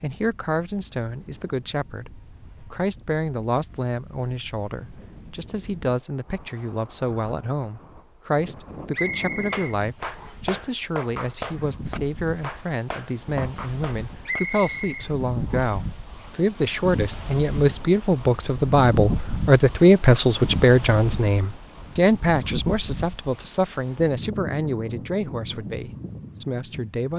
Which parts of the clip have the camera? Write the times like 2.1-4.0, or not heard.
not heard.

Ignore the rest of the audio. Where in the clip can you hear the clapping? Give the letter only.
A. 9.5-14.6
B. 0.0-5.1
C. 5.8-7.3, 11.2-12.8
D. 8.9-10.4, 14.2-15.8
A.